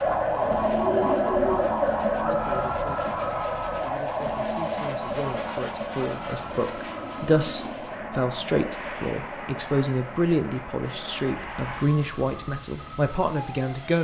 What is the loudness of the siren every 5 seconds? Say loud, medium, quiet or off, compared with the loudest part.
loud, medium, quiet.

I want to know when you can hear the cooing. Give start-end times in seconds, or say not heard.
0.5-2.0.